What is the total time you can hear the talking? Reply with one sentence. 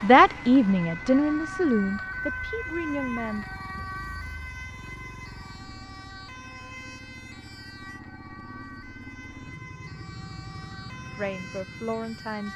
The talking can be heard for 5 seconds in total.